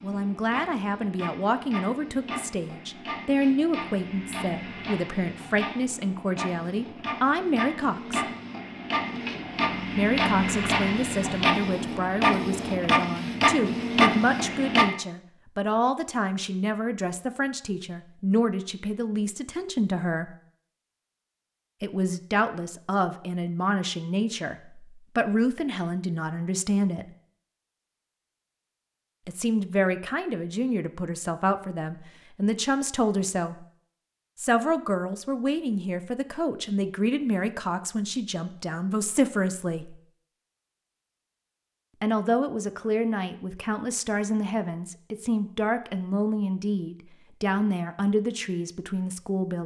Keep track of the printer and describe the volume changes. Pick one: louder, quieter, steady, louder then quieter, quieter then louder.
louder.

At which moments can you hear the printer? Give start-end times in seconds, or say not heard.
0.0-14.9.